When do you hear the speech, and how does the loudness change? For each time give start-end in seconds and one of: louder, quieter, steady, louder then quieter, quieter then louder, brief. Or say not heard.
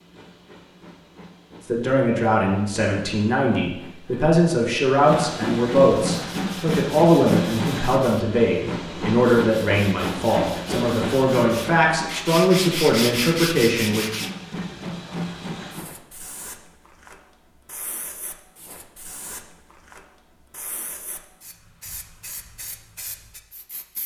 1.6-14.1 steady.